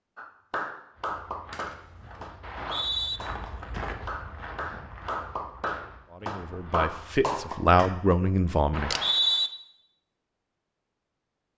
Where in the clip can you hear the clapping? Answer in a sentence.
You can hear the clapping from 0.1 to 7.9 s.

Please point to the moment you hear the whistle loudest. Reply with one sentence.
The loudest moment of the whistle is at 9 seconds.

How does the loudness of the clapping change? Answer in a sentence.
The loudness of the clapping goes down, then up.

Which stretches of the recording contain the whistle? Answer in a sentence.
You can hear the whistle from 2.4 to 3.2 s and from 8.7 to 9.5 s.